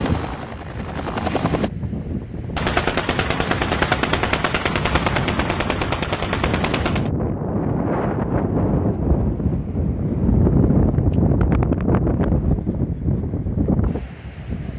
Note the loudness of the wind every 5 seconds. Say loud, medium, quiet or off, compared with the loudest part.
medium, loud, loud.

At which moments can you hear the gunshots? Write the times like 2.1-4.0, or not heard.
2.5-7.1.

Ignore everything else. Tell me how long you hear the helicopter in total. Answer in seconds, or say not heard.
2 s.